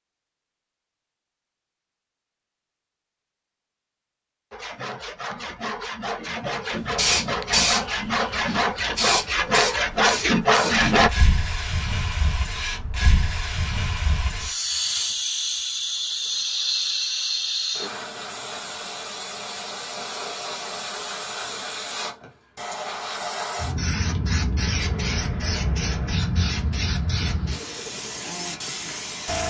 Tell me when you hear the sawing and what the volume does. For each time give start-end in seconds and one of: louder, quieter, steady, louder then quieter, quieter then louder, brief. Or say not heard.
4.5-11.1 louder.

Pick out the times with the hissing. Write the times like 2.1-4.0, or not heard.
7.0-29.4.